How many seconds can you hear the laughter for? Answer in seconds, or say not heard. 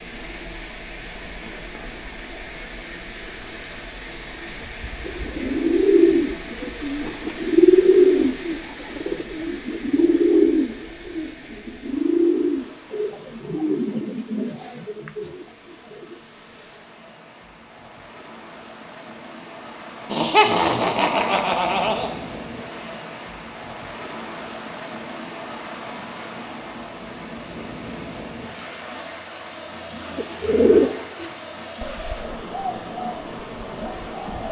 2 s.